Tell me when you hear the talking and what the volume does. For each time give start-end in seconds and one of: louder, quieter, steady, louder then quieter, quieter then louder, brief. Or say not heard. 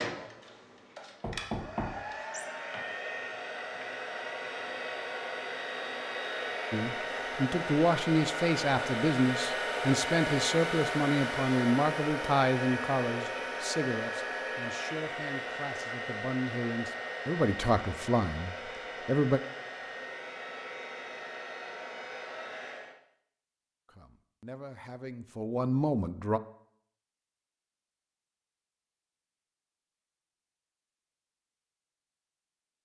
6.7-19.4 quieter then louder
23.9-26.4 brief.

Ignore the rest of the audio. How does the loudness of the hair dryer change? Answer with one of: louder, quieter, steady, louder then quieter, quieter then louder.
louder then quieter.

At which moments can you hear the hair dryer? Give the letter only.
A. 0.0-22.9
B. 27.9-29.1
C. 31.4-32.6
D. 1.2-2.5
A.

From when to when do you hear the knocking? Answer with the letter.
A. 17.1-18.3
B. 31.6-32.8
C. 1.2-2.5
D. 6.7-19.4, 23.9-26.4
C.